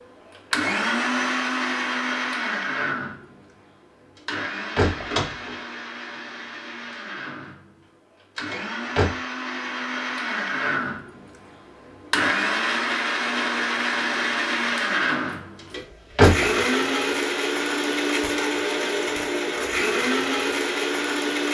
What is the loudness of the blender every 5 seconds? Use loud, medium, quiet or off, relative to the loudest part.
loud, medium, loud, loud, loud.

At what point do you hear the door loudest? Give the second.
16 s.